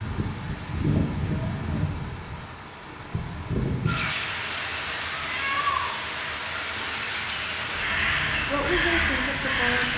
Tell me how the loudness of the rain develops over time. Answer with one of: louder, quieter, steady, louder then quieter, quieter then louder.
steady.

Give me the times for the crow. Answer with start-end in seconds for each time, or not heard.
7.8-9.9.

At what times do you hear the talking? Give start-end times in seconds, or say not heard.
8.4-9.9.